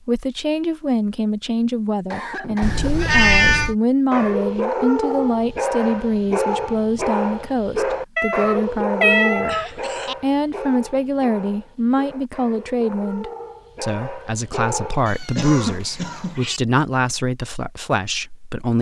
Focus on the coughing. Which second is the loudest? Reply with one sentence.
The volume of the coughing peaks at 16 seconds.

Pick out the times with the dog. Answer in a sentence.
The dog can be heard from 4.1 to 15.2 s.